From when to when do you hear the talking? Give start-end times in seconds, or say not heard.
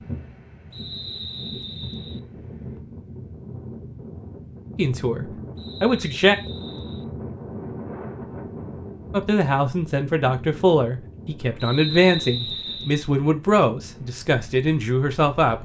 4.8-6.3, 9.1-15.6.